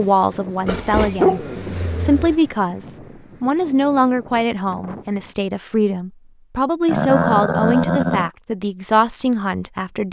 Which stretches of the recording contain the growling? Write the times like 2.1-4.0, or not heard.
0.7-2.4, 6.8-8.3.